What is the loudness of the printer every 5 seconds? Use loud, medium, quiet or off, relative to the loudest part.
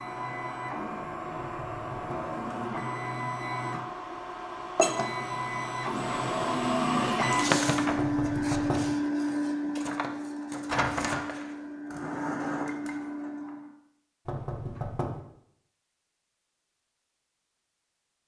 medium, loud, medium, off.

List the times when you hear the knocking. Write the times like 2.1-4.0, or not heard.
1.4-2.3, 8.0-8.9, 14.2-15.2.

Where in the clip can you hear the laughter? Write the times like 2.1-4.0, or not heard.
not heard.